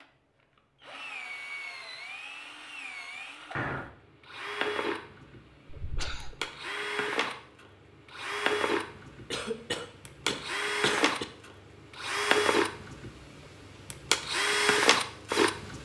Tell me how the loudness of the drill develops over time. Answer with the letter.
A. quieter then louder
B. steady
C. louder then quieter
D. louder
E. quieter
D.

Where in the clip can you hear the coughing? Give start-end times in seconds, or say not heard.
5.7-6.3, 9.3-11.2.